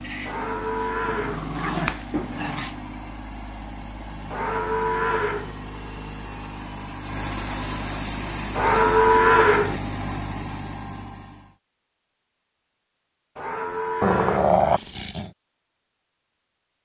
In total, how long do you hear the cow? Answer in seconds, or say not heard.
5 s.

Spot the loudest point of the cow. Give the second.
9 s.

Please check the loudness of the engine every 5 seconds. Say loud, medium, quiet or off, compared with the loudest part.
medium, loud, loud, off.